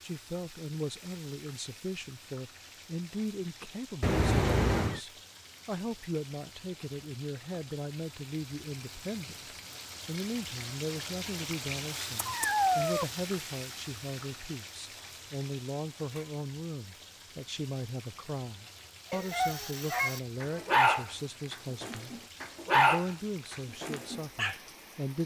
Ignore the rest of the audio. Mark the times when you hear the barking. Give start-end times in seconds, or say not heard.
19.3-24.6.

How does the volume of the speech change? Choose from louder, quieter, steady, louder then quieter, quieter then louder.
steady.